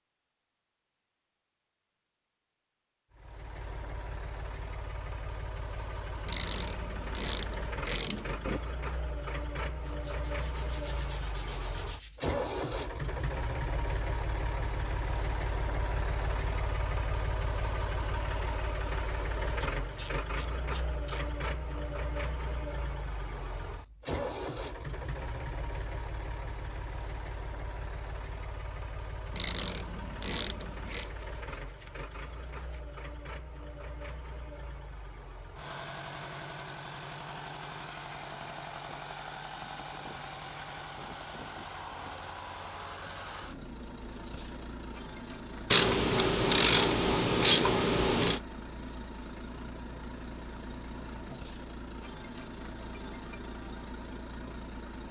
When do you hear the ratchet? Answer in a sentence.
The ratchet can be heard from 6.2 to 8.6 s, from 19.6 to 21.2 s, from 29.4 to 31.1 s and from 45.7 to 48.4 s.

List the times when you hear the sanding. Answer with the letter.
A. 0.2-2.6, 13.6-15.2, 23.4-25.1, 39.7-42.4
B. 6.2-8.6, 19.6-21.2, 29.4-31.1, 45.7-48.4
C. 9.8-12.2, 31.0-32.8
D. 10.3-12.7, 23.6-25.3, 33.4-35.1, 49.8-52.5
C.